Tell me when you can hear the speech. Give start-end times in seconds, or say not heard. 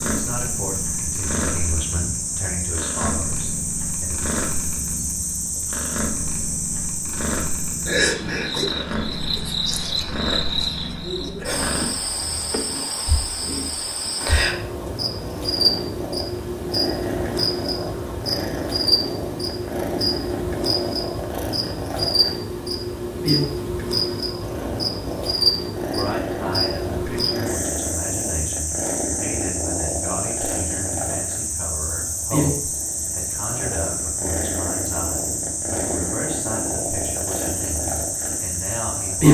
0.0-4.2, 25.9-39.2.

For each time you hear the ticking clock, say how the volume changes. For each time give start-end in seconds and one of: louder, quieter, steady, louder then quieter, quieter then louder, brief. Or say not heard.
not heard.